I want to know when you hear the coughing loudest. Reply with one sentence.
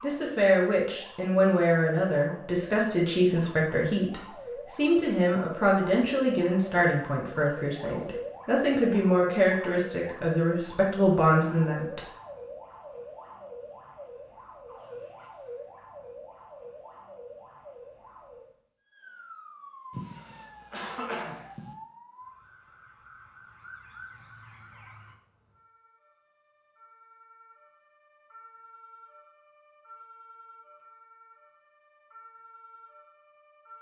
The volume of the coughing peaks at 21 seconds.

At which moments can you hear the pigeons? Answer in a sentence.
The pigeons can't be heard in this clip.